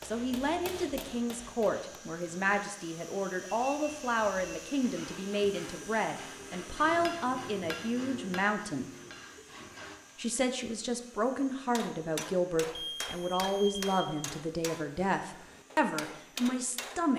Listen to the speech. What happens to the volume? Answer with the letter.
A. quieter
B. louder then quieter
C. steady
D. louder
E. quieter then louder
C.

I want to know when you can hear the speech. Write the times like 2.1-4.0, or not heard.
0.0-8.9, 10.2-17.1.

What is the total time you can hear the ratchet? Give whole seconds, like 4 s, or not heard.
not heard.